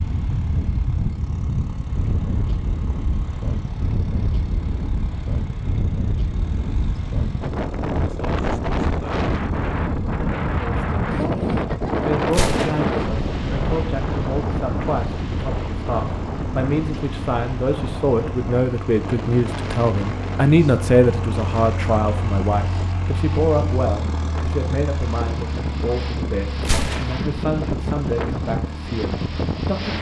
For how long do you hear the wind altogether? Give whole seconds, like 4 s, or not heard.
30 s.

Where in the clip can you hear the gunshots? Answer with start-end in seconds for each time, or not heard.
12.3-12.9, 26.6-27.3.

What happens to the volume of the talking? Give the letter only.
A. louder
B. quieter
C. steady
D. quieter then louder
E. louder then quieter
E.